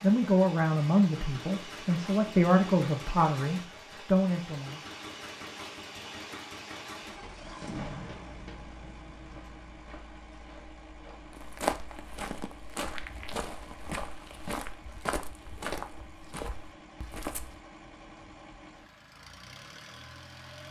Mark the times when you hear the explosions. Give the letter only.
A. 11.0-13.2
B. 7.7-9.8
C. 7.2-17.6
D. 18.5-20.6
B.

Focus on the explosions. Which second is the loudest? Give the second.
8 s.